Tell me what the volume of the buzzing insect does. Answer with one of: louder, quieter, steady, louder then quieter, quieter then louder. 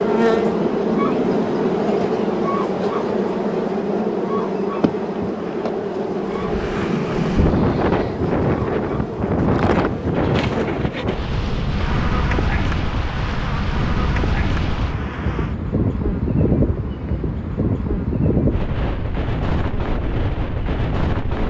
quieter.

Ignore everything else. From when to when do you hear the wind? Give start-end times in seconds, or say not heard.
6.2-21.4.